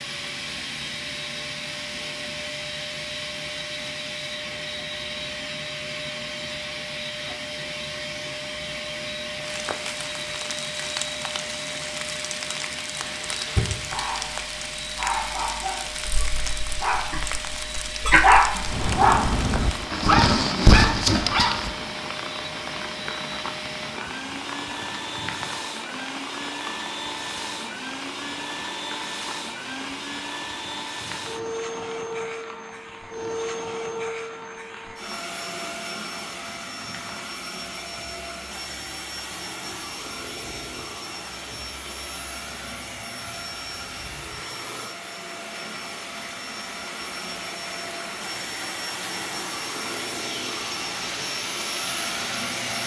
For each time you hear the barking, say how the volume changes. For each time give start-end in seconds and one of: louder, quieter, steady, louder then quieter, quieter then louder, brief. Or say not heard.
13.2-21.7 louder.